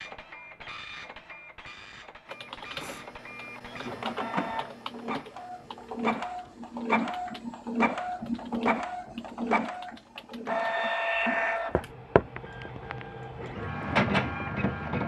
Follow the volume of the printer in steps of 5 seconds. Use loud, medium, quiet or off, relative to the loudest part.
medium, loud, loud.